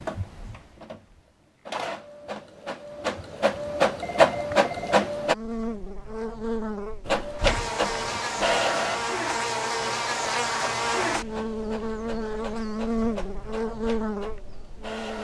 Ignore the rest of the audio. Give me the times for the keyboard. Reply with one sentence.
The keyboard can't be heard in this clip.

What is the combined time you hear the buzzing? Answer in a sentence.
You can hear the buzzing for 10 seconds altogether.